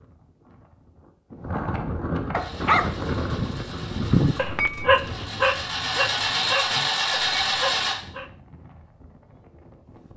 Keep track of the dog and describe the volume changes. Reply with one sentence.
The volume of the dog goes down.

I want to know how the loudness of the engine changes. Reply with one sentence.
The volume of the engine goes up.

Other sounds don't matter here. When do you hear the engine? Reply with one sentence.
The engine can be heard from 2.4 to 8.0 s.